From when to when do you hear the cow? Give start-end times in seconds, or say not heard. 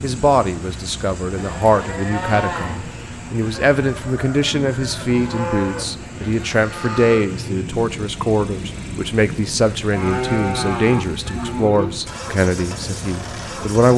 1.4-2.8, 5.0-7.3, 9.9-11.9.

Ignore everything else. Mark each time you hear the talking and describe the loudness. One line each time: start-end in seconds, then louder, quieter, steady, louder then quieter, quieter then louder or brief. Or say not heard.
0.0-13.9 steady.